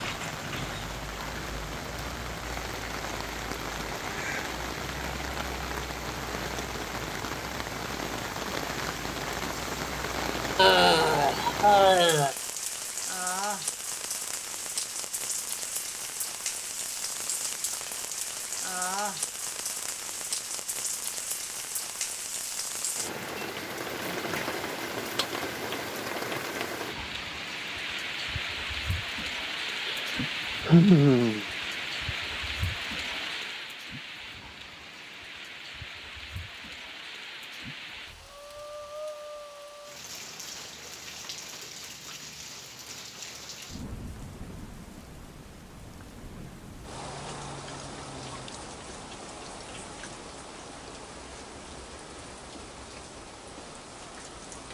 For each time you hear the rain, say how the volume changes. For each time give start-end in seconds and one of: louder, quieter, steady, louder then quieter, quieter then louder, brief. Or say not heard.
0.0-54.7 quieter.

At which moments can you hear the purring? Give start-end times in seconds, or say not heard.
not heard.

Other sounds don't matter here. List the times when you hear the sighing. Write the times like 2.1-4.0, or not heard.
10.6-12.3, 29.9-31.4.